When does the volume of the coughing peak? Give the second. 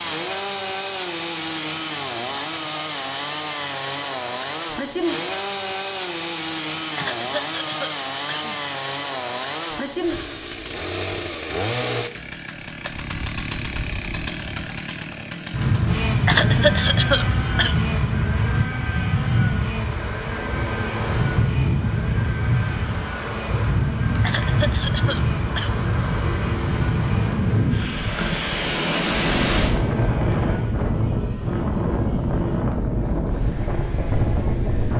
17 s.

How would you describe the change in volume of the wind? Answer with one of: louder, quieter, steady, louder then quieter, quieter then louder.
steady.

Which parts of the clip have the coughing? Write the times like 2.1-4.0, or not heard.
7.0-8.7, 16.2-17.8, 24.2-25.8.